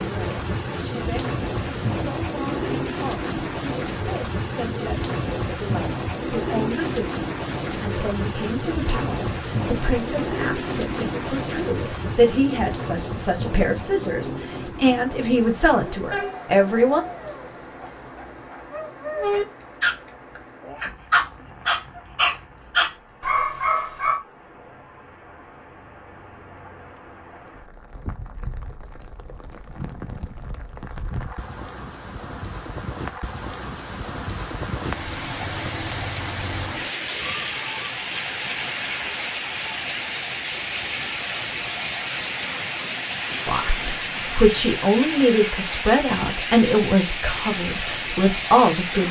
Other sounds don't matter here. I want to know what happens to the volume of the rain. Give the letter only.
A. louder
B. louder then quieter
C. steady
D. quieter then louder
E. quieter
D.